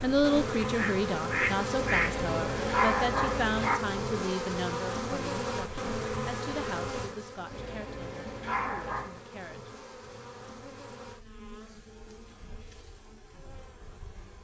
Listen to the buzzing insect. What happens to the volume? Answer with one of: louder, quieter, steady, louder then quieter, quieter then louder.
quieter.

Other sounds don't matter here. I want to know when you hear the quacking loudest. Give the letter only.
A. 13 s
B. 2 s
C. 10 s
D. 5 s
B.